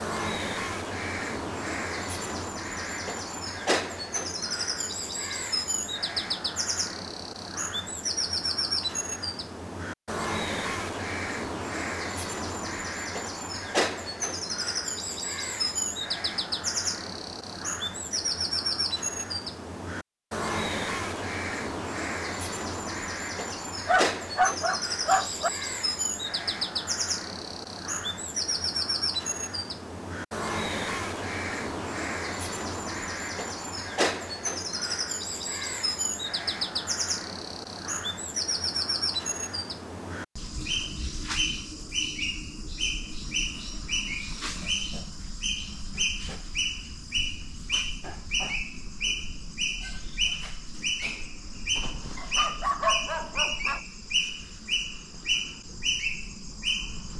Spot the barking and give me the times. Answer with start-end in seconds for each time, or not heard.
23.5-25.5, 51.8-53.8.